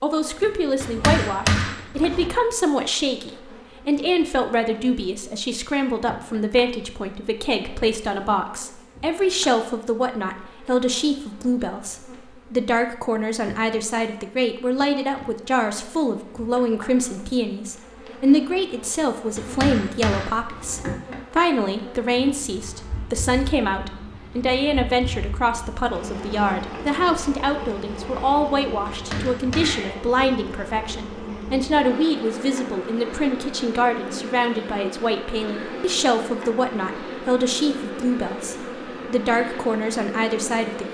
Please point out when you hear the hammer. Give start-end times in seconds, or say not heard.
0.8-2.3, 19.4-20.9, 28.9-30.4.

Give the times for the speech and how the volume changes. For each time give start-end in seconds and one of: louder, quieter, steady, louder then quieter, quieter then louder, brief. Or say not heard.
0.0-40.8 steady.